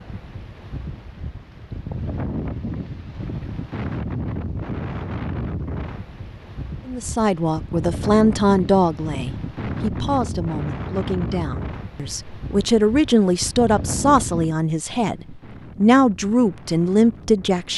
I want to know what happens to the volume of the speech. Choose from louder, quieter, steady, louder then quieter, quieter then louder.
quieter then louder.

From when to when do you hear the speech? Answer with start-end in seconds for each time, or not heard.
6.8-17.7.